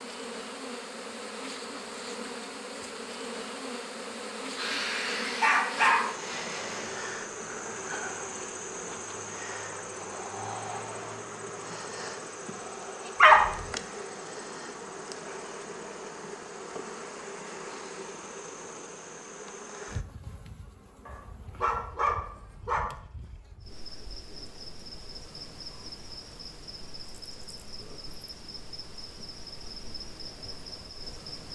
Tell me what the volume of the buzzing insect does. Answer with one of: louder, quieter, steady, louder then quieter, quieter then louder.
quieter.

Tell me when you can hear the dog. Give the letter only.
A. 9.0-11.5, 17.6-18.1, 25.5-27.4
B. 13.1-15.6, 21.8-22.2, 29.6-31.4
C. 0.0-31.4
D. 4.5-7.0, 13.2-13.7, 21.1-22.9
D.